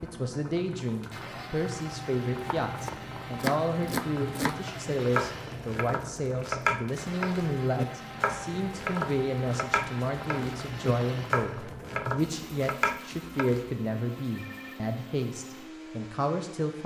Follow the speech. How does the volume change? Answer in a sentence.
The volume of the speech stays about the same.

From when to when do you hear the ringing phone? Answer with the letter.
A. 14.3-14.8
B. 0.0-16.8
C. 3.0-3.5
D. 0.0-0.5
A.